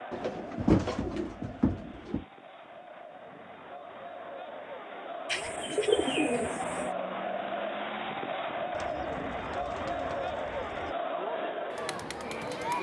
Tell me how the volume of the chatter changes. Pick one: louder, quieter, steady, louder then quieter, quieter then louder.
louder.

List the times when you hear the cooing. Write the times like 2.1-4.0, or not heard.
0.1-2.2, 5.2-6.9, 8.7-10.9.